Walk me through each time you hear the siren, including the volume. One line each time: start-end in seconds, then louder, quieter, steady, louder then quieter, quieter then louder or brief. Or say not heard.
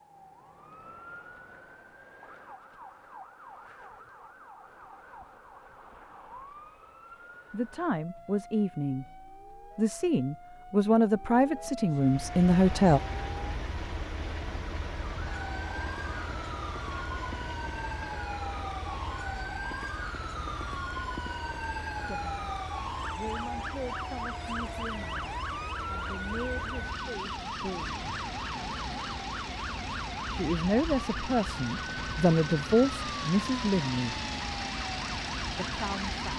0.0-36.3 louder.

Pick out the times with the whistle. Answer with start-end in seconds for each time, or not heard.
not heard.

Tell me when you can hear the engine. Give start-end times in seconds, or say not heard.
11.9-36.3.